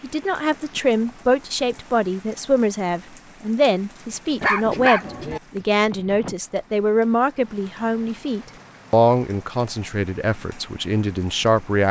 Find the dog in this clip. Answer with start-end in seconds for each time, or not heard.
4.4-5.4.